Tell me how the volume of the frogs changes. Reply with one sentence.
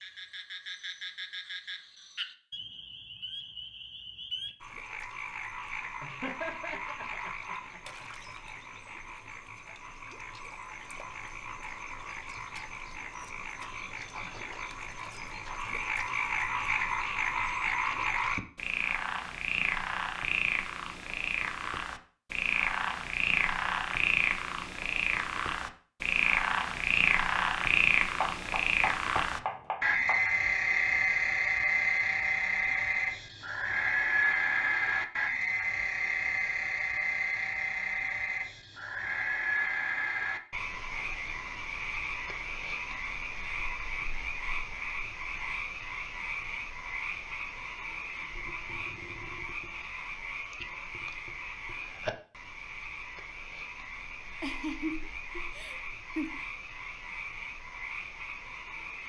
The volume of the frogs goes up, then down.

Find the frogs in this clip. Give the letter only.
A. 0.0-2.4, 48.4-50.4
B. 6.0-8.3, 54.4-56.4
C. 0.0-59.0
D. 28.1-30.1
C.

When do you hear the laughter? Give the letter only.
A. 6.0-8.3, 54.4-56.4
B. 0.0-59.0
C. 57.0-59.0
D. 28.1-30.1
A.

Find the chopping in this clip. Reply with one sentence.
You can hear the chopping from 28.1 to 30.1 s.